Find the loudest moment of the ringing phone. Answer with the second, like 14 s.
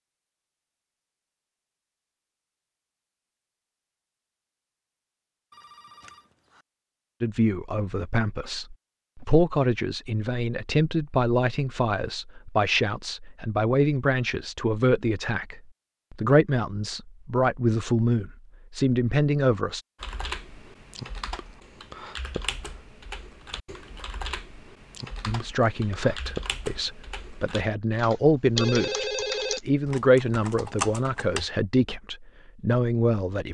29 s.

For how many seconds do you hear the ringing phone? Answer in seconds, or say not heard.
2 s.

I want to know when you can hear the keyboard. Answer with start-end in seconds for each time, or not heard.
20.0-31.4.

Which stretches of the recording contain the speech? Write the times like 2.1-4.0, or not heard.
7.2-19.9, 25.2-33.4.